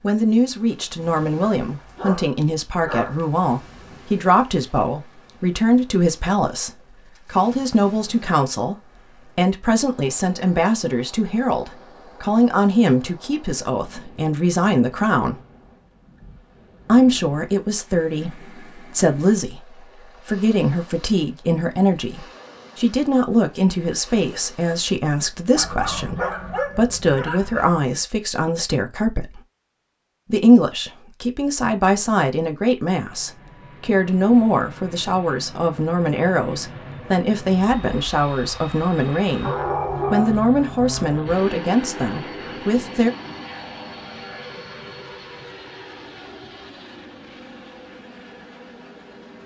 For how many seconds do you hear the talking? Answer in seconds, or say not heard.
41 s.